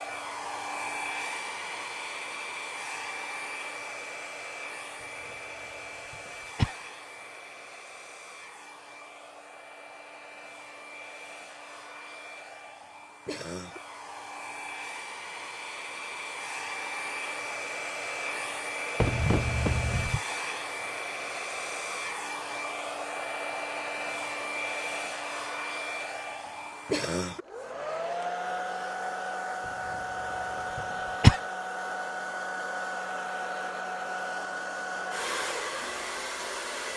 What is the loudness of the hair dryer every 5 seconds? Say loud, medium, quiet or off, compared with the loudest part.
loud, medium, medium, loud, loud, loud, loud, loud.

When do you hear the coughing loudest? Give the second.
31 s.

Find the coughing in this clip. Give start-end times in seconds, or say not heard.
6.1-6.8, 19.0-20.2, 30.8-31.4.